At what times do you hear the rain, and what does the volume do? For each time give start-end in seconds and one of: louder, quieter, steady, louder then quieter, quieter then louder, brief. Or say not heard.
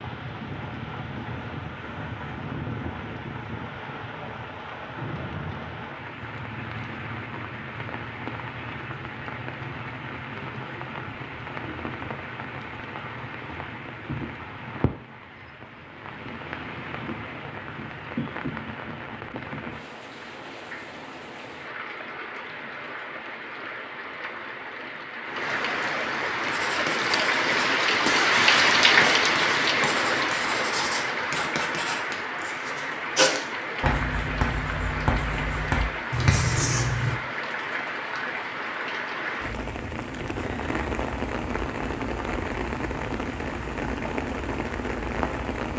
0.0-45.7 louder then quieter.